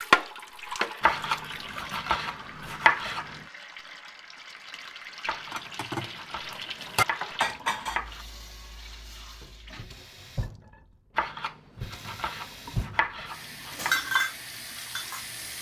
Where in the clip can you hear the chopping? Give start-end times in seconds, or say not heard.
1.0-3.4, 5.2-8.2, 11.2-13.9.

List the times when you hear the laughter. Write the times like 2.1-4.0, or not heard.
not heard.